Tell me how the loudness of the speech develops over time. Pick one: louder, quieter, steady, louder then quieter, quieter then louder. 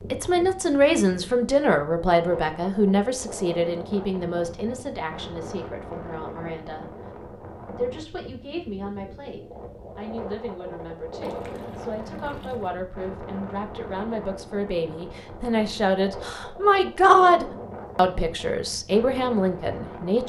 quieter then louder.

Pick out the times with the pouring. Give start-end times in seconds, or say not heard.
11.2-12.8.